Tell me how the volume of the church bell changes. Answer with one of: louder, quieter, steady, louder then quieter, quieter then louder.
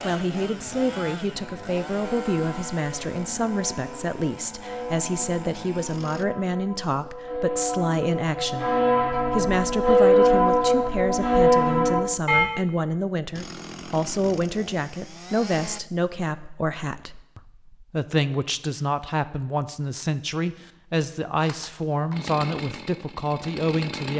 louder.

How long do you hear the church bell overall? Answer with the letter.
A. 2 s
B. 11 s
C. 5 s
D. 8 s
B.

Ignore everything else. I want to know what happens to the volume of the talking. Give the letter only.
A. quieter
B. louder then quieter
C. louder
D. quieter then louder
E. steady
E.